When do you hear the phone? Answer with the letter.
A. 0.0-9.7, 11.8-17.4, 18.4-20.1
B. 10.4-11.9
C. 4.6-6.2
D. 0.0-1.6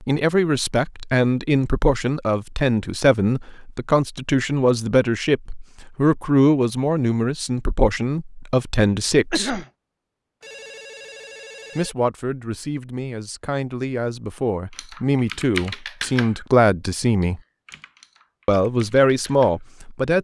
B.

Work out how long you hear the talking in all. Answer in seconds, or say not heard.
17 s.